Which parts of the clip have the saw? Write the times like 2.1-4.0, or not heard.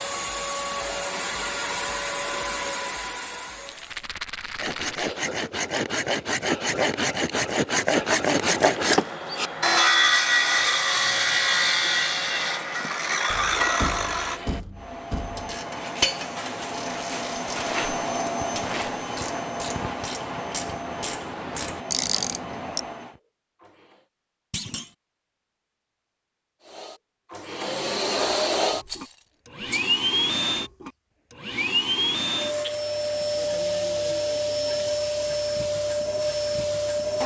4.6-14.4.